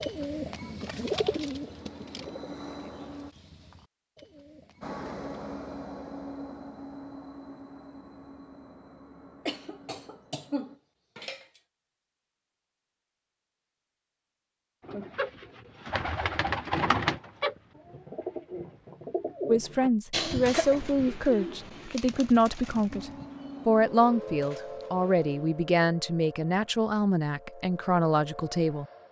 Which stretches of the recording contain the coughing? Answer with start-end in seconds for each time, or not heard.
9.4-11.4, 20.1-20.8.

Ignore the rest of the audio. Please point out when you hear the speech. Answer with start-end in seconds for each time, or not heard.
19.4-28.9.